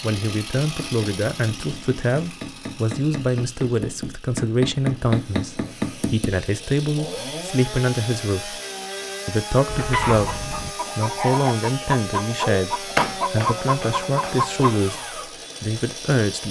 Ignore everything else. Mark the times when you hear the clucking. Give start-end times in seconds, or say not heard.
9.7-14.8.